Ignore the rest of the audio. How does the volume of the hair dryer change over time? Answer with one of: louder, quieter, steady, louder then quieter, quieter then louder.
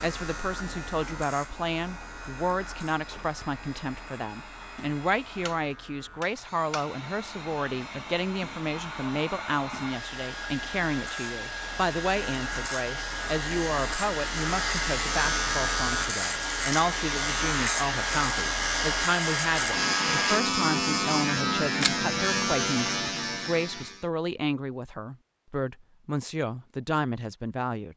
louder.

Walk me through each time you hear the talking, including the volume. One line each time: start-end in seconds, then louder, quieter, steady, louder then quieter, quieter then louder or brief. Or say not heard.
0.0-27.9 steady.